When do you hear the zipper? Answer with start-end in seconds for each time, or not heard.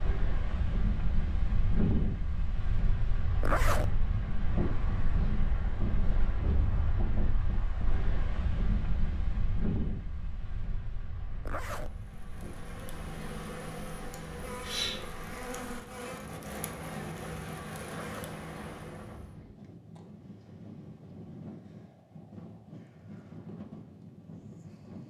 3.4-3.9, 11.4-11.9, 17.9-18.4.